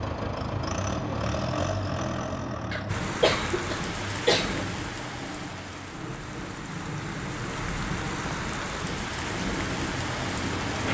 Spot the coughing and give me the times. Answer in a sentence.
The coughing can be heard from 2.7 to 4.7 s.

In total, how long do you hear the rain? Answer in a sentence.
The rain can be heard for 8 seconds in total.